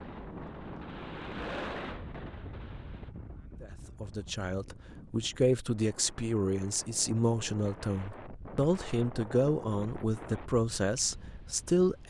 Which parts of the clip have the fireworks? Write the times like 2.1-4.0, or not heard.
0.0-3.1.